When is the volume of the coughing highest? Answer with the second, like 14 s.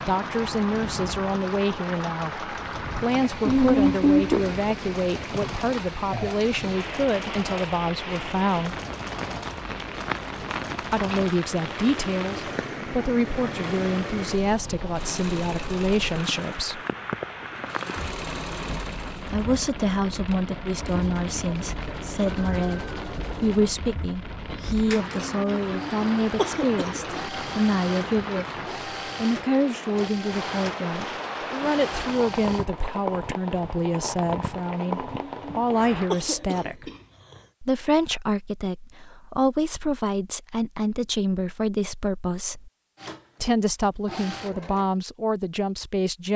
4 s.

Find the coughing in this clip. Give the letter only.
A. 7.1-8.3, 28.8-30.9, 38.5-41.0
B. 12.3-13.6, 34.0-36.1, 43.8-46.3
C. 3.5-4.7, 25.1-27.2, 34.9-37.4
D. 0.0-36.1
C.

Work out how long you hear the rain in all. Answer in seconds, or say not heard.
36 s.